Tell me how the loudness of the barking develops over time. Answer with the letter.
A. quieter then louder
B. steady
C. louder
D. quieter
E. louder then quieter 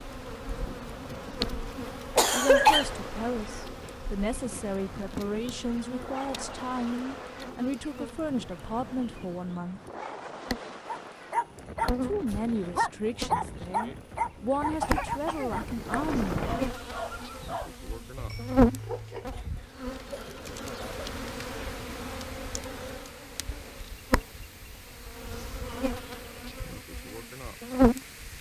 D.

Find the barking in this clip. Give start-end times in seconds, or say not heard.
10.8-19.3.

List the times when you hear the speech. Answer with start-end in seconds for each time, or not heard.
2.2-9.8, 12.0-16.3.